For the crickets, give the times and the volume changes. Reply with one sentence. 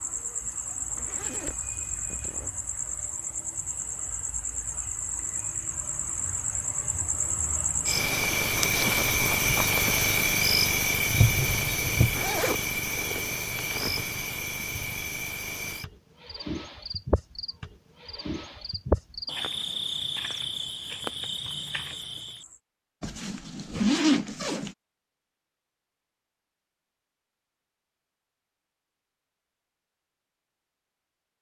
You can hear the crickets from 0.0 to 22.6 s, getting louder then quieter.